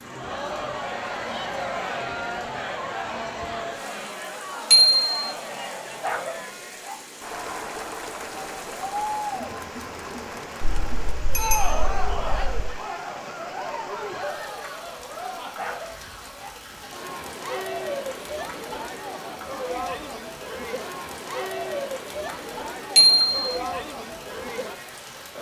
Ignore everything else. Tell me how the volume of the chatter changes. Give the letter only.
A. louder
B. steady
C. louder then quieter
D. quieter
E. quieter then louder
B.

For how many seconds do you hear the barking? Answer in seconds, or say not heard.
2 s.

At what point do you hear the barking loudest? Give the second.
6 s.